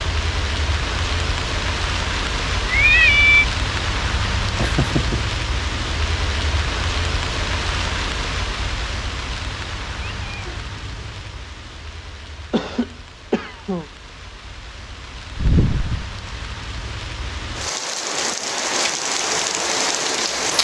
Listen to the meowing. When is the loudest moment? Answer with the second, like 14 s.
3 s.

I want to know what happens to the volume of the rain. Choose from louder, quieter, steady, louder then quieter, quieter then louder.
quieter then louder.